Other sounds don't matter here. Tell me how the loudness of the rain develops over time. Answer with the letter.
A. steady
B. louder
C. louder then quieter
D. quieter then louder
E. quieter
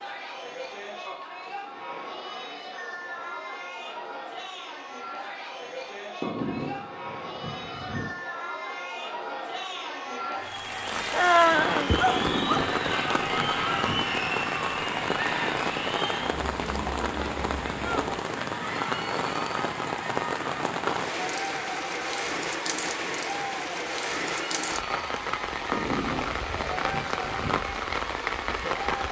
A.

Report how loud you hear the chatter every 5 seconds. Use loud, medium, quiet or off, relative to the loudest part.
medium, medium, loud, loud, medium, medium.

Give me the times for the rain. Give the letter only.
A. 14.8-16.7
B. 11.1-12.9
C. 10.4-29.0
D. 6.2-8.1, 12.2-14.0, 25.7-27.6
C.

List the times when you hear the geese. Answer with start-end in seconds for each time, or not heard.
6.2-8.1, 12.2-14.0, 25.7-27.6.